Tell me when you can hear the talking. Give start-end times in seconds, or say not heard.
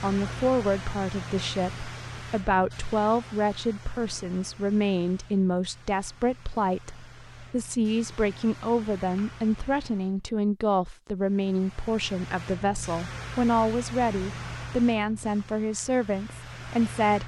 0.0-17.2.